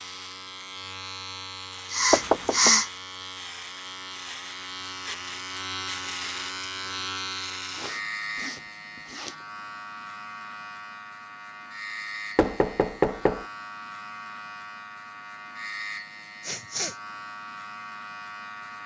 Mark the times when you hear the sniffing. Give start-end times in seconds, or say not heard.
1.9-2.9, 7.8-9.3, 16.4-16.9.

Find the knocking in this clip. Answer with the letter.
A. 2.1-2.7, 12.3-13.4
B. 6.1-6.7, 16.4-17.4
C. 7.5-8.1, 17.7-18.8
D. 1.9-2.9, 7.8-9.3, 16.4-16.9
A.